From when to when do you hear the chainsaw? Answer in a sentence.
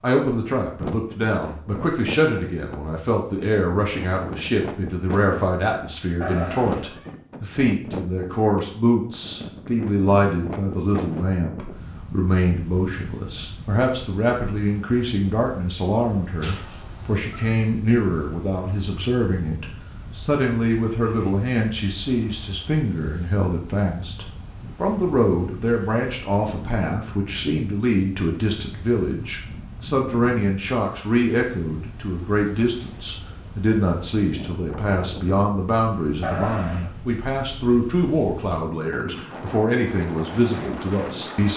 You can't hear the chainsaw here.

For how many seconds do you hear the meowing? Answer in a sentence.
You can hear the meowing for 3 seconds altogether.